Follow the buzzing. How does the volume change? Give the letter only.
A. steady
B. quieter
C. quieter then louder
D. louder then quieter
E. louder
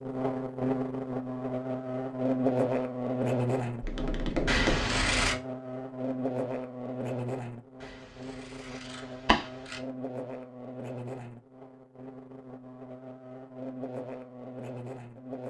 B.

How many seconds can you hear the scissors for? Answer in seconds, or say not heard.
3 s.